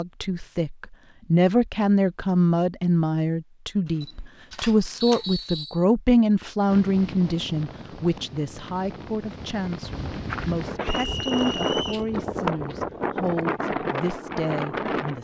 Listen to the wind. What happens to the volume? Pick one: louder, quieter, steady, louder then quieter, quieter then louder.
louder.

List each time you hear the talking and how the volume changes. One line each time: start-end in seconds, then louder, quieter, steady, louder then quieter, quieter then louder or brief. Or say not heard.
0.0-15.1 quieter.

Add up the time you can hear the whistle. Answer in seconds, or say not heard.
2 s.